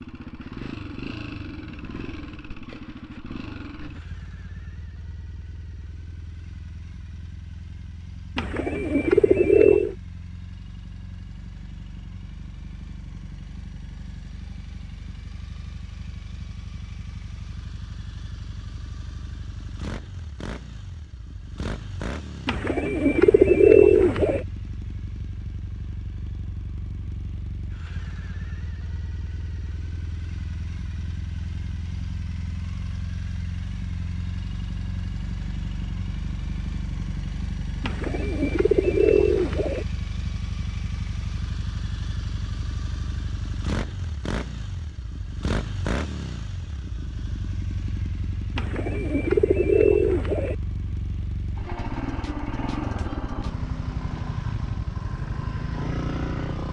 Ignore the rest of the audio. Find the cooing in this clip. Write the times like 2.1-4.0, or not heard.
8.3-9.9, 22.4-24.4, 37.8-39.9, 48.5-50.5.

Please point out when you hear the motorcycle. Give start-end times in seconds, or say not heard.
0.0-56.6.